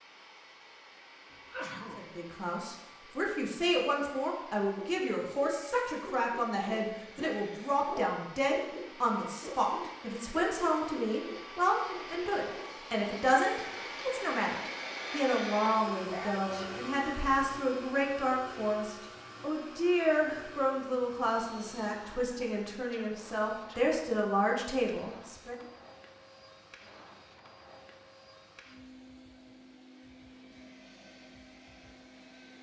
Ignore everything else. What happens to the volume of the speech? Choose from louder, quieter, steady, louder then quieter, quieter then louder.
steady.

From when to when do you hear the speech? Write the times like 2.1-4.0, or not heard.
1.9-25.6.